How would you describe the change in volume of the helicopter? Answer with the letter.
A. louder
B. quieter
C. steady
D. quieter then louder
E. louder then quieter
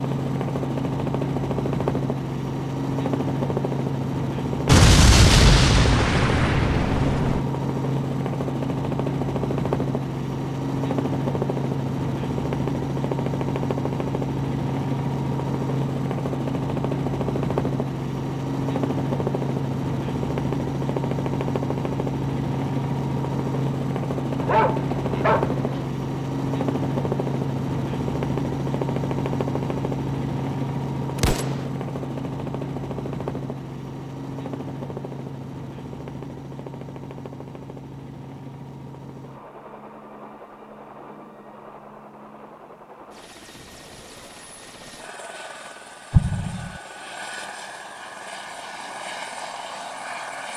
B.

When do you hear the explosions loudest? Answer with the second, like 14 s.
5 s.